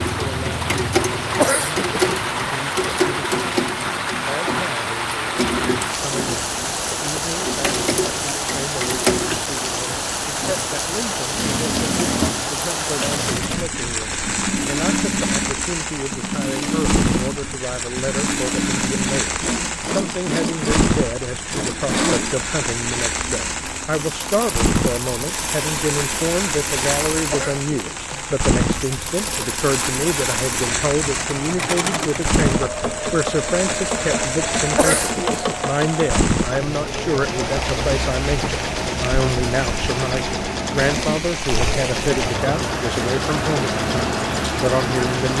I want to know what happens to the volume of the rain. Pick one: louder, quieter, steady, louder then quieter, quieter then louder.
steady.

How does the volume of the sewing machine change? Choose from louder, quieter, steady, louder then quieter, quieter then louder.
steady.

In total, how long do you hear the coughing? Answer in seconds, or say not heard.
2 s.